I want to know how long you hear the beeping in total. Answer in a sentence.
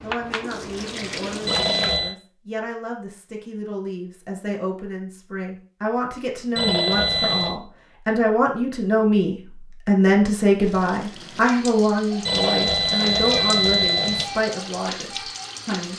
The beeping can be heard for 4 seconds in total.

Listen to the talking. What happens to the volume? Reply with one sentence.
The loudness of the talking goes up, then down.